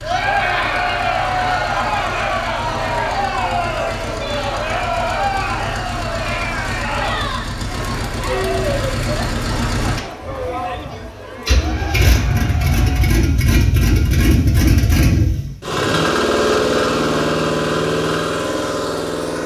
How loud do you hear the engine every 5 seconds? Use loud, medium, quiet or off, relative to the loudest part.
quiet, medium, loud, loud.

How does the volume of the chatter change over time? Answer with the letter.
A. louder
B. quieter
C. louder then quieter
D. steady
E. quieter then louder
B.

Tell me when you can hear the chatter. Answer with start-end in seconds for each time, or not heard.
0.0-13.2.